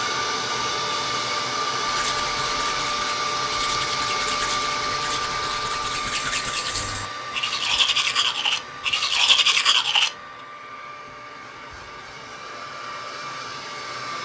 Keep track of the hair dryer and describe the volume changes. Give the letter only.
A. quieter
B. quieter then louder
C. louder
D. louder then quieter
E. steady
A.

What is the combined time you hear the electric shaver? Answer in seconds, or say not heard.
not heard.